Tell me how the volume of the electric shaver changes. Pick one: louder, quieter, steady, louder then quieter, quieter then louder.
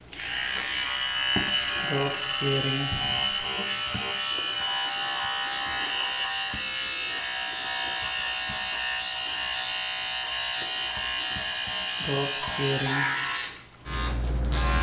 steady.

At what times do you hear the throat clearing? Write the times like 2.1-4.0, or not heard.
1.8-3.4, 11.9-13.1.